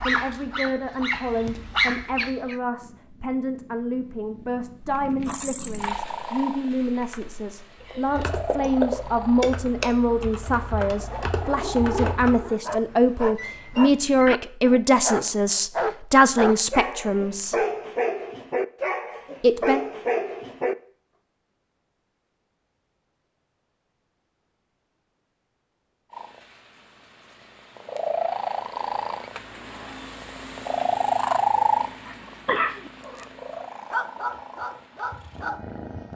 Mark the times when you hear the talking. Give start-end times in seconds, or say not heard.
0.0-17.6, 19.4-19.8.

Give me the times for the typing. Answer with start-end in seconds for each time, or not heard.
4.9-12.4.